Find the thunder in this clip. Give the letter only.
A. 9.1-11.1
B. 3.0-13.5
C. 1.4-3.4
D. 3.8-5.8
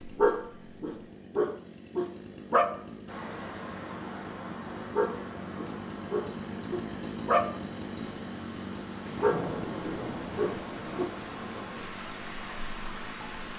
A.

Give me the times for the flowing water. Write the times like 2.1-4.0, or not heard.
3.0-13.5.